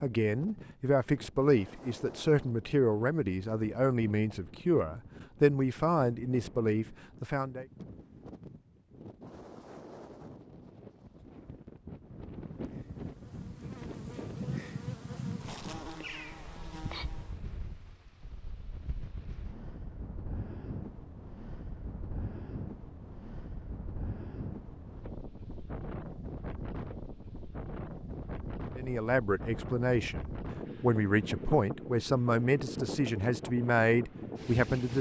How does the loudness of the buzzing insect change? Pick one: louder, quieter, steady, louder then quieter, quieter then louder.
louder then quieter.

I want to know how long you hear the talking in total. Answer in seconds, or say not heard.
14 s.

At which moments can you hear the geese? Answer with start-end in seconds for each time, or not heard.
not heard.